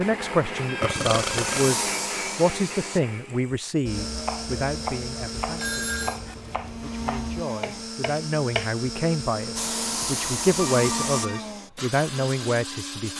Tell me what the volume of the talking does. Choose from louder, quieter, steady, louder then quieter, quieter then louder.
quieter then louder.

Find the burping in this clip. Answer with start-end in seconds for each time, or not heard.
0.8-1.7.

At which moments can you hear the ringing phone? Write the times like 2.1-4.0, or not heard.
0.6-1.6, 5.5-6.2, 10.6-11.5.